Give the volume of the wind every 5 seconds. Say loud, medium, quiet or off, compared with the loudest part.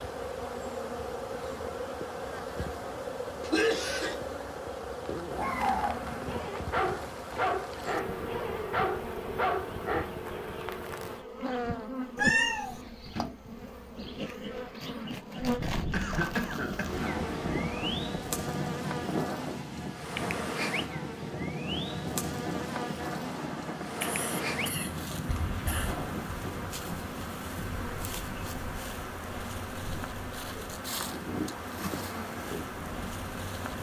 off, off, off, loud, loud, medium, medium.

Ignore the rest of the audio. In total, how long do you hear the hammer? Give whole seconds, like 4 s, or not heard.
not heard.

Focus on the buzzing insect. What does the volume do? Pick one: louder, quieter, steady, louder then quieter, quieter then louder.
steady.